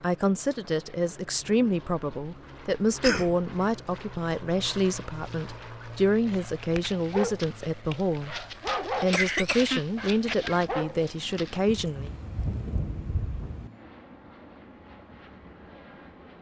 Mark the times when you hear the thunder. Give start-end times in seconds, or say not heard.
11.7-13.7.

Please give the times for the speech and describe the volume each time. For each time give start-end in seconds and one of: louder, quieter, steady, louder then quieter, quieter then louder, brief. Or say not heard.
0.0-12.1 steady.